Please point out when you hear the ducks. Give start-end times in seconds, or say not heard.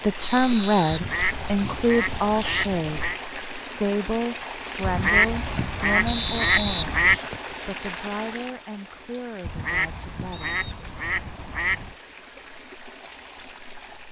0.9-3.2, 4.8-7.2, 9.4-11.9.